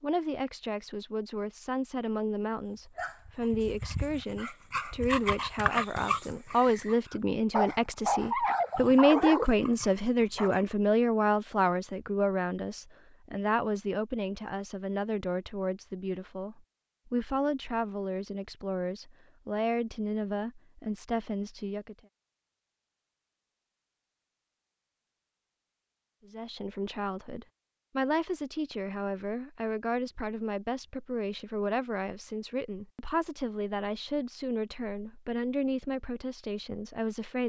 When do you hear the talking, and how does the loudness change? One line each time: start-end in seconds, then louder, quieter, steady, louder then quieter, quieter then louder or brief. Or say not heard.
0.0-21.9 louder then quieter
26.2-37.4 steady.